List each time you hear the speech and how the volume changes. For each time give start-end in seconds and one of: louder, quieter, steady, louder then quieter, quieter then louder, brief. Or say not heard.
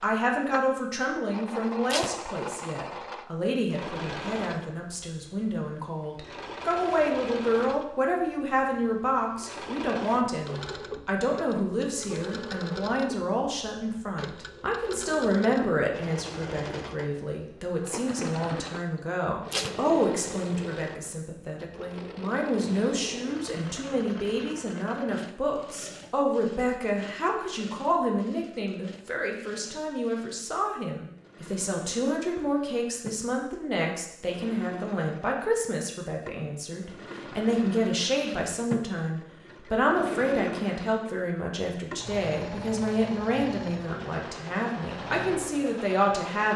0.0-46.5 steady.